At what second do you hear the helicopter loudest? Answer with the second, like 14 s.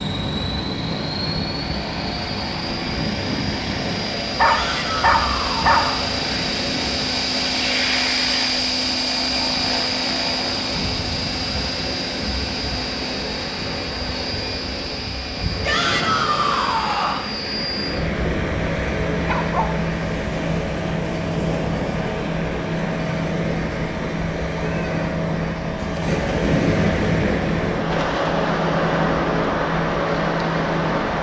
8 s.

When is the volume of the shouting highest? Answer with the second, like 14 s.
16 s.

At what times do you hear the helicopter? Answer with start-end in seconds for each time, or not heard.
0.0-31.1.